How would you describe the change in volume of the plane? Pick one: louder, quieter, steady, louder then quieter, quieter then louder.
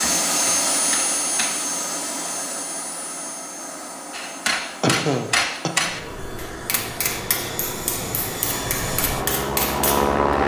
quieter then louder.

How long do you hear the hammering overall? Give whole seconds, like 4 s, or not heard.
8 s.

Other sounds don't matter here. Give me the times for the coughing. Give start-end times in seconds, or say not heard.
4.8-5.8.